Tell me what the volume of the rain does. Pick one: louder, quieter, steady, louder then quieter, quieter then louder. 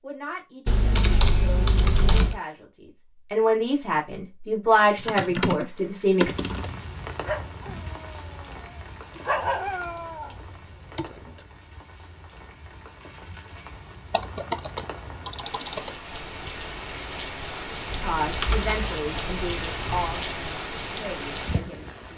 quieter then louder.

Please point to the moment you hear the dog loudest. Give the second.
9 s.